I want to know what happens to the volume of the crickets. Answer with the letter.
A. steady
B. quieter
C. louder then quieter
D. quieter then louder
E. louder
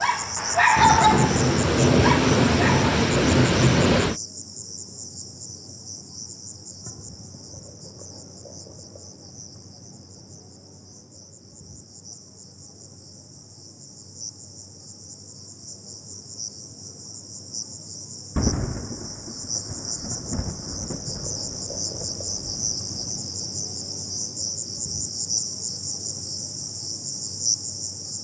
D.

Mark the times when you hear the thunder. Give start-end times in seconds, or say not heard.
0.8-4.2, 18.4-23.2.